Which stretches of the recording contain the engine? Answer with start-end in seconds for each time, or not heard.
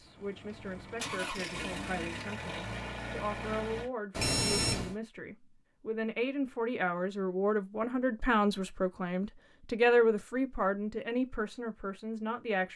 0.0-3.9.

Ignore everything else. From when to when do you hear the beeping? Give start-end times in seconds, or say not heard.
4.1-5.0.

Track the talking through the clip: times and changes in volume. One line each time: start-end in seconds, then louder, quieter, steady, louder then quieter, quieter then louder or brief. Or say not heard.
0.0-12.7 louder.